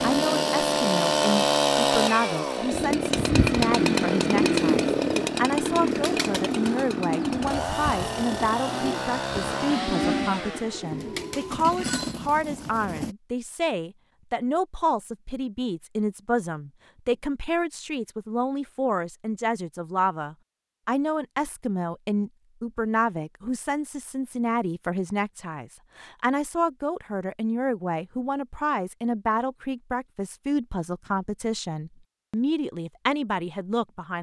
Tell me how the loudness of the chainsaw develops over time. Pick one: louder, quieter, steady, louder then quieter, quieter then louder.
quieter.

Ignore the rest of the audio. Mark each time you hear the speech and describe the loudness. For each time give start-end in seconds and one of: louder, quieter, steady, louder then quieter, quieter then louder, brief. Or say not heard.
0.0-34.1 steady.